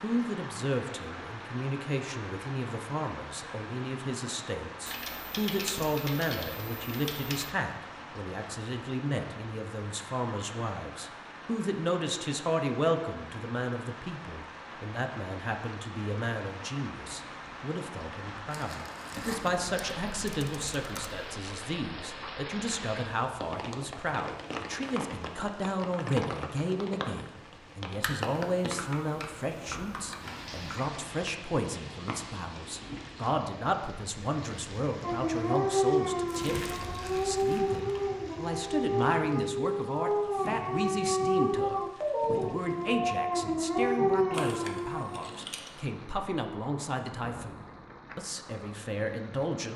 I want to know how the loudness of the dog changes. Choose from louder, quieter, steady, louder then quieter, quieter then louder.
steady.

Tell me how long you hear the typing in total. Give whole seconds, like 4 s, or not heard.
9 s.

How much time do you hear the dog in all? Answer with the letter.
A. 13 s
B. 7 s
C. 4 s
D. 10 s
D.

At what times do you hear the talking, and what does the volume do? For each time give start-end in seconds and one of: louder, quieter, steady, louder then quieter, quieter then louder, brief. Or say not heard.
0.0-49.7 steady.